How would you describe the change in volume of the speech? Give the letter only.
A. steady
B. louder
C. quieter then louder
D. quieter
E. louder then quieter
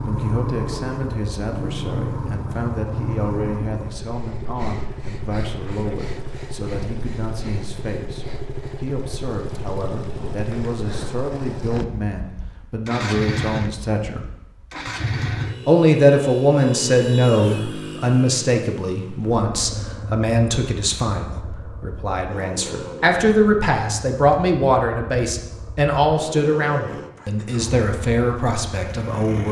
B.